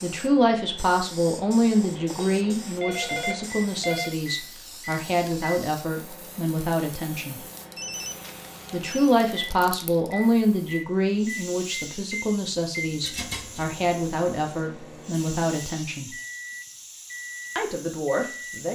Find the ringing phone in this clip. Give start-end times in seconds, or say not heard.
1.6-4.2, 7.8-9.2, 13.0-13.8.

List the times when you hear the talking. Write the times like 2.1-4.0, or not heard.
0.0-7.4, 8.7-16.1, 17.6-18.6.